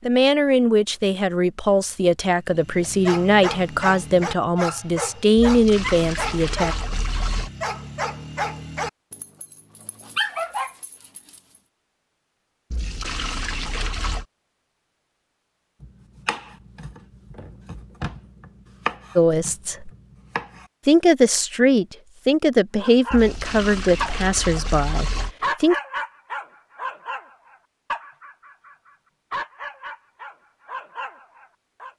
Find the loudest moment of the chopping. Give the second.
19 s.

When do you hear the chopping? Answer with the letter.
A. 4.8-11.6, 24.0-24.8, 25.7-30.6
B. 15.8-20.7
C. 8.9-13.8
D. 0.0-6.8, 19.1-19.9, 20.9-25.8
B.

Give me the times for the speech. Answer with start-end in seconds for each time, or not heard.
0.0-6.8, 19.1-19.9, 20.9-25.8.